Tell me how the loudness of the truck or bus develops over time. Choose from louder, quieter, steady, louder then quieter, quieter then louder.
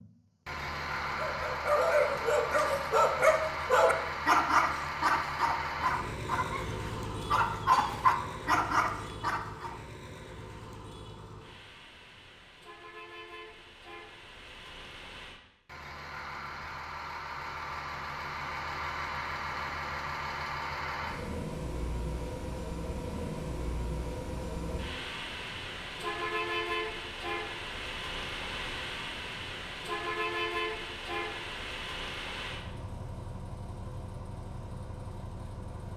quieter then louder.